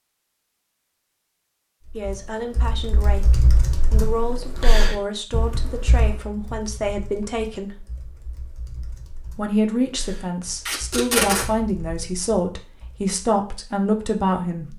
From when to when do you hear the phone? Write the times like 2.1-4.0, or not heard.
not heard.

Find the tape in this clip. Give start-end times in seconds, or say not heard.
10.7-11.5.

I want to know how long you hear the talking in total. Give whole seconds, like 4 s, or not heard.
11 s.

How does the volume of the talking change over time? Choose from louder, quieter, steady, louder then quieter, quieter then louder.
louder.